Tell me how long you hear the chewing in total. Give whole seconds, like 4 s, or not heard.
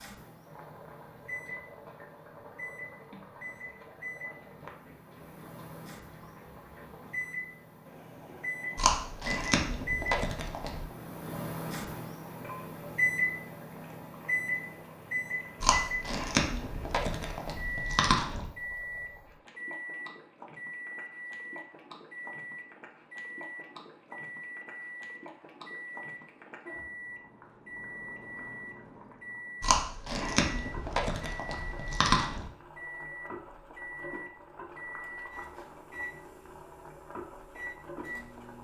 8 s.